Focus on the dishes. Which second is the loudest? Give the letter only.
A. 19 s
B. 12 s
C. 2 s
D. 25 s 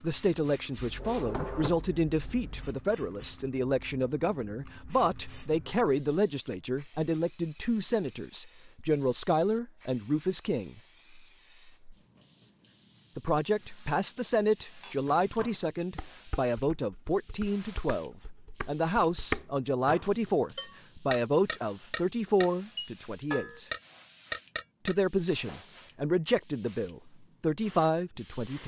A.